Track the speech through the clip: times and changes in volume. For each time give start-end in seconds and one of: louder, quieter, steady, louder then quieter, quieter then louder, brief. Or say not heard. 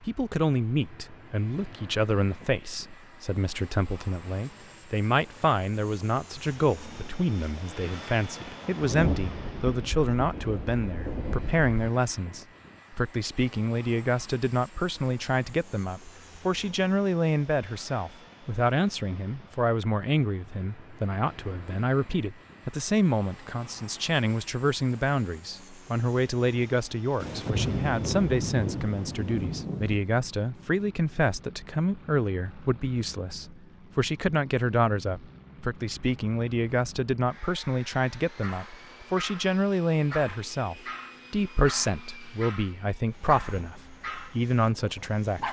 0.0-45.4 steady.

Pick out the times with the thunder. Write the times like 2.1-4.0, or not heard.
8.8-11.7, 27.2-30.0.